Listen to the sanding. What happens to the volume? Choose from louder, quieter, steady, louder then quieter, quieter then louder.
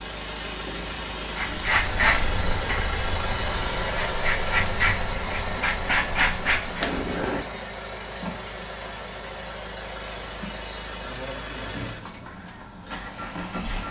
quieter then louder.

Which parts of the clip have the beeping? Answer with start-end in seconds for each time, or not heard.
6.8-7.5.